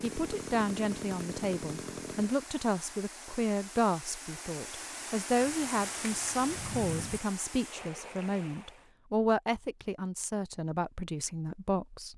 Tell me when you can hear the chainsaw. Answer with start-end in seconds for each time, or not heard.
0.0-2.3.